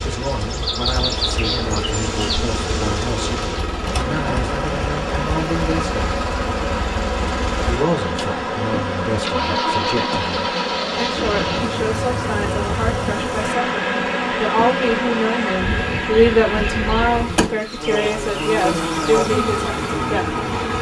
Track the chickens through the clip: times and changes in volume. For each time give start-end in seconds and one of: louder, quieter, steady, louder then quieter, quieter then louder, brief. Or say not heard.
not heard.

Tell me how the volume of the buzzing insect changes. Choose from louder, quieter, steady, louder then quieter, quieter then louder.
steady.